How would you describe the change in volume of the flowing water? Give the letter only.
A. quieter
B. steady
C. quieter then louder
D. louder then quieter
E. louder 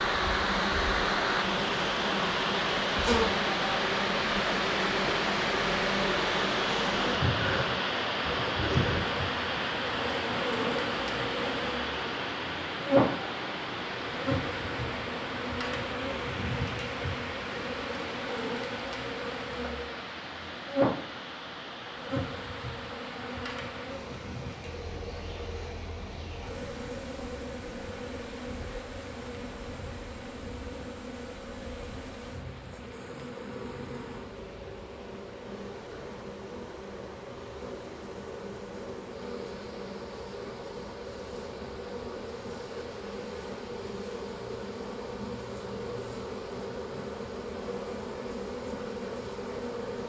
A.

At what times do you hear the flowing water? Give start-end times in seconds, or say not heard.
0.0-50.0.